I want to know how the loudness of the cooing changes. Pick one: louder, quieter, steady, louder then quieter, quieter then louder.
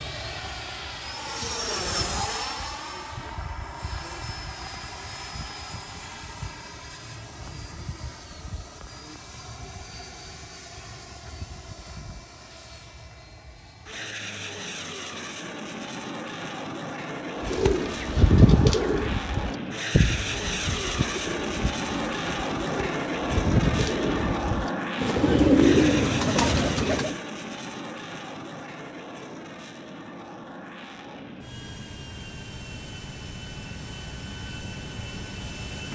quieter then louder.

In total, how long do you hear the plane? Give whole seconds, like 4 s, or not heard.
36 s.